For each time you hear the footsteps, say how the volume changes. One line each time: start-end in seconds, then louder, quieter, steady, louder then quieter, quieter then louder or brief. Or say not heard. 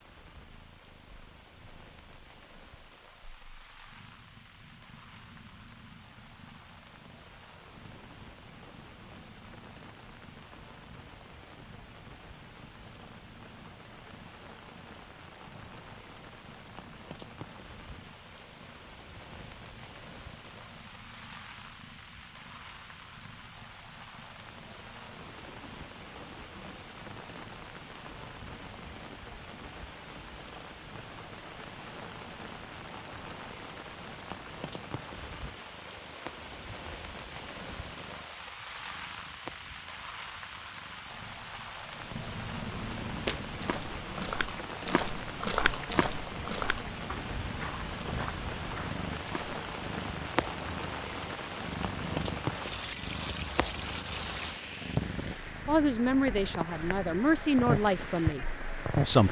43.1-49.6 louder then quieter.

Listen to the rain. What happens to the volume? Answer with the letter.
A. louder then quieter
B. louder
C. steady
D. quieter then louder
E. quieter
B.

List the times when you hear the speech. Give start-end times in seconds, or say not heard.
55.6-59.2.